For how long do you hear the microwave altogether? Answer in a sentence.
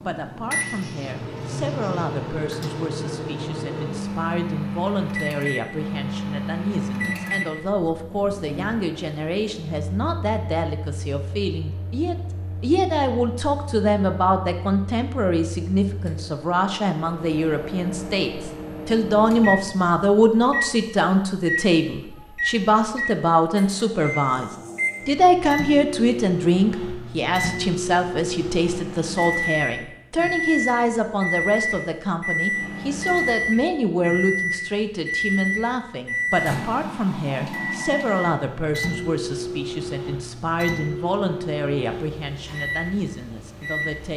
You can hear the microwave for 44 seconds altogether.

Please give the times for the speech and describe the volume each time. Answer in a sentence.
You can hear the speech from 0.1 to 44.1 s, getting louder then quieter.